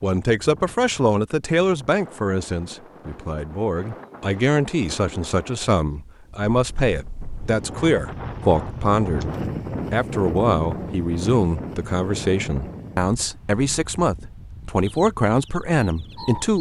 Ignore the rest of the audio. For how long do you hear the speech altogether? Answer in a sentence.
You can hear the speech for 16 seconds altogether.